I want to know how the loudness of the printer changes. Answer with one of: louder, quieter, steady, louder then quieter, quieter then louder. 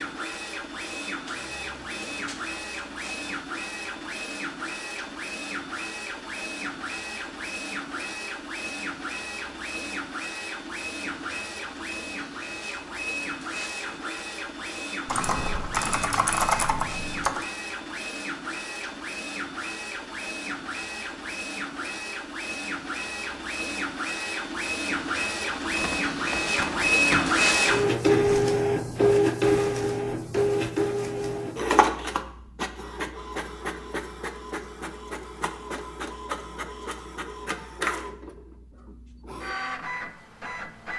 louder then quieter.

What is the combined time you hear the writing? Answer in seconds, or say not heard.
not heard.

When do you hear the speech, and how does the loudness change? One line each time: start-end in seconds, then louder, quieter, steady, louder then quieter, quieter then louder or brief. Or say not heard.
not heard.